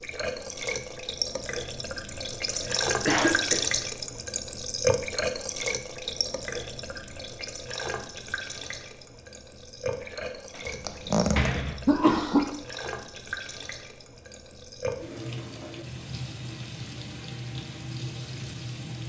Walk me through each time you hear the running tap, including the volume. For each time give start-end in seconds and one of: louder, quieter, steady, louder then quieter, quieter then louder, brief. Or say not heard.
0.0-19.0 quieter.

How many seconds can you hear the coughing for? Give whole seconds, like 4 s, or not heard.
3 s.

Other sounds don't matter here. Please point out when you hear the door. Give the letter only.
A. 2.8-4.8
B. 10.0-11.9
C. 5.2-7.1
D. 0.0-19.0
B.